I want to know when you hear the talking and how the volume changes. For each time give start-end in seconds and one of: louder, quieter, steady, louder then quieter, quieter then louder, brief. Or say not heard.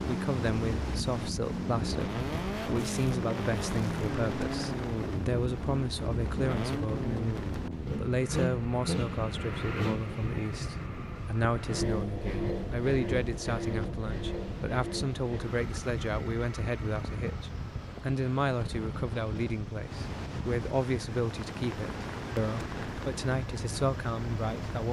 0.1-24.8 steady.